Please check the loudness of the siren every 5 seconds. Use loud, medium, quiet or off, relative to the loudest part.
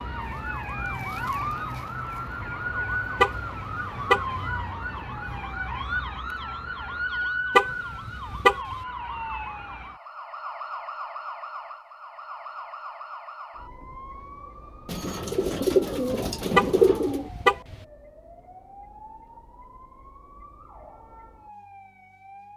loud, loud, medium, quiet, quiet.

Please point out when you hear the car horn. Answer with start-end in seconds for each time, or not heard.
3.2-4.4, 7.5-8.8, 16.6-17.8.